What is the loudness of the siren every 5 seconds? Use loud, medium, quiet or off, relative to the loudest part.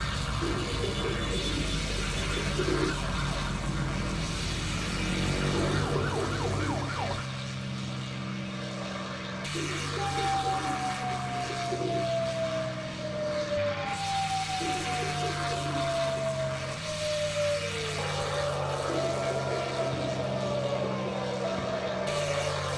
medium, loud, loud, loud, loud.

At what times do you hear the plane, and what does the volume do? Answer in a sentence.
You can hear the plane from 0.0 to 22.7 s, at a steady volume.